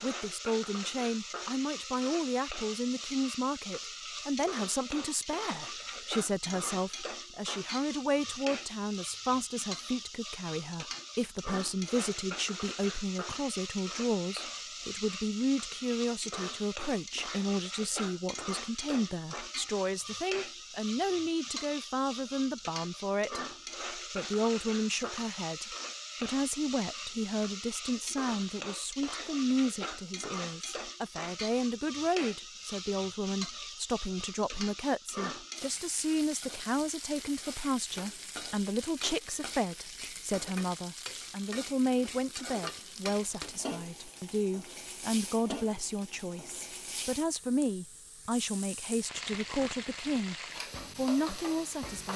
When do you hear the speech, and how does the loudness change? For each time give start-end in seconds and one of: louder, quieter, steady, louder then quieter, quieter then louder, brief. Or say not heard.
0.0-50.4 steady
51.0-52.1 brief.